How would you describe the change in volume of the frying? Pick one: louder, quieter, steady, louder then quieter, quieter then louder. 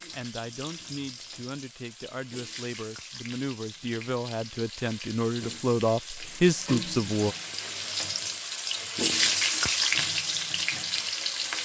louder.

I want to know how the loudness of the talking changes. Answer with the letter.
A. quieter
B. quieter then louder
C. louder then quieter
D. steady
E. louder
E.